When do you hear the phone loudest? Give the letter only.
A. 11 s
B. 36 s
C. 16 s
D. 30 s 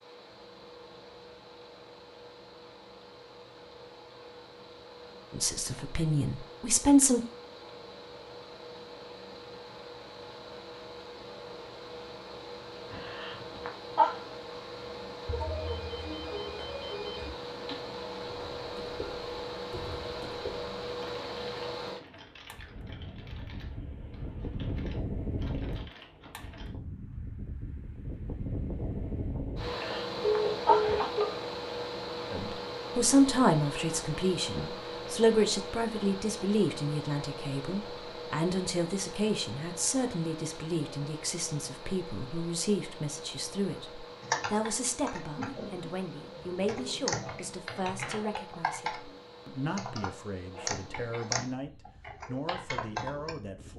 D.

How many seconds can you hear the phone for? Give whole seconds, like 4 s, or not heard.
4 s.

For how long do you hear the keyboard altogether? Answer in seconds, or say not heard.
18 s.